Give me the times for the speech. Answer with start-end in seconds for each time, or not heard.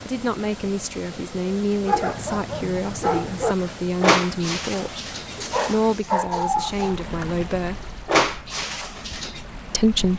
0.0-5.0, 5.7-7.8, 9.7-10.1.